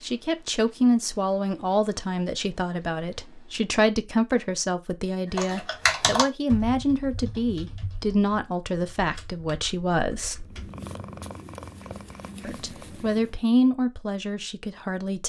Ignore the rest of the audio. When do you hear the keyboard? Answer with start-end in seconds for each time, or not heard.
5.3-10.7.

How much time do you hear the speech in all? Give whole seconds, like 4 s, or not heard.
13 s.